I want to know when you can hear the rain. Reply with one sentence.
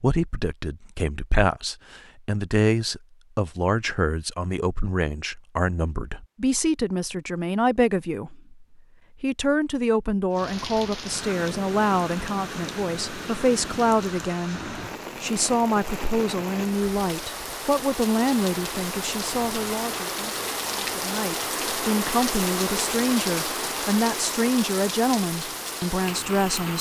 You can hear the rain from 10.3 to 26.7 s.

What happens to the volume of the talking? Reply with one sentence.
The loudness of the talking stays about the same.